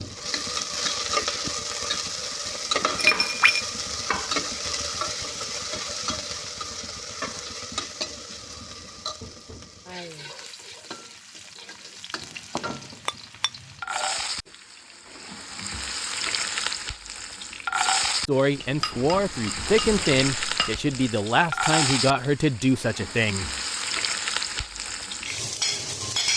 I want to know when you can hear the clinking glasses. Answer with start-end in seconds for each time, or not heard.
3.0-3.6, 13.1-14.2, 18.6-20.9.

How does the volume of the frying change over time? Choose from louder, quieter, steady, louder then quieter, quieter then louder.
quieter then louder.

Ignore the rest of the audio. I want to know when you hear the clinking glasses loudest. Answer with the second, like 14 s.
3 s.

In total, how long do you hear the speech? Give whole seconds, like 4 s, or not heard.
5 s.